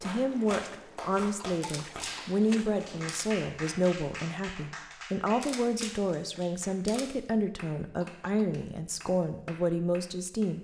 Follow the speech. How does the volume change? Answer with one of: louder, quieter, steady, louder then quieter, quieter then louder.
steady.